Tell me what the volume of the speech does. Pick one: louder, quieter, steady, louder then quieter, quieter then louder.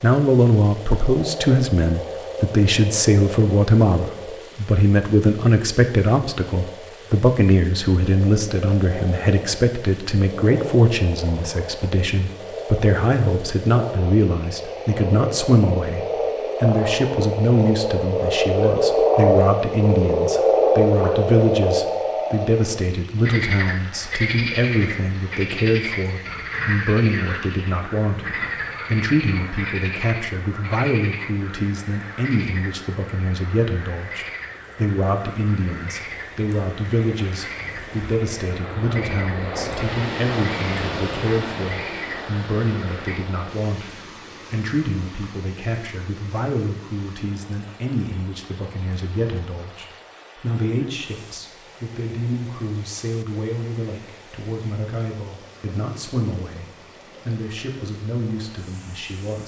quieter.